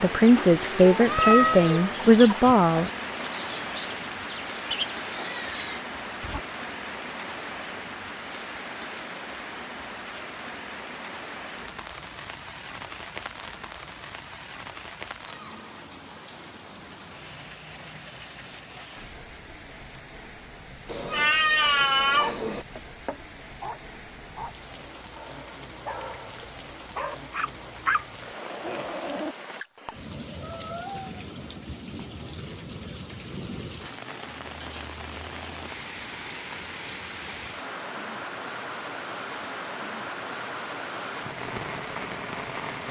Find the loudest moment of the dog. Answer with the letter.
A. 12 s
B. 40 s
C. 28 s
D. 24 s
C.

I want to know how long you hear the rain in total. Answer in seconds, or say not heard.
43 s.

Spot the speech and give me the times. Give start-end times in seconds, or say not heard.
0.0-2.9.